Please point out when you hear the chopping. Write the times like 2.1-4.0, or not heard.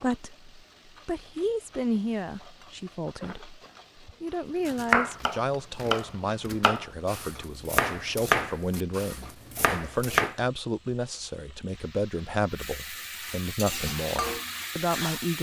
4.7-10.3.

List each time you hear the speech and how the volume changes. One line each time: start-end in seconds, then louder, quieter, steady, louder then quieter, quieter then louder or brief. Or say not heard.
0.0-15.3 steady.